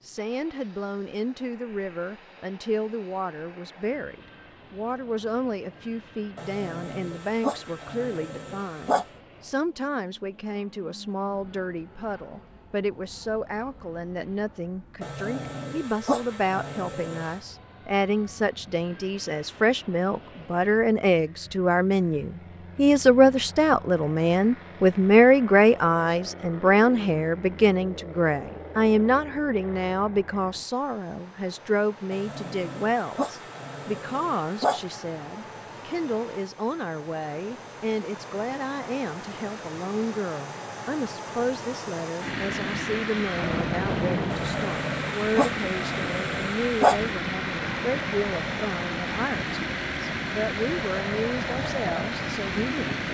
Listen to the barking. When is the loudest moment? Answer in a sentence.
The loudest moment of the barking is at 47 seconds.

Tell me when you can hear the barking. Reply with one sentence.
The barking can be heard from 6.3 to 9.1 s, from 15.0 to 17.4 s, from 32.1 to 34.8 s and from 44.3 to 47.0 s.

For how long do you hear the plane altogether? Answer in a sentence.
You can hear the plane for 53 seconds altogether.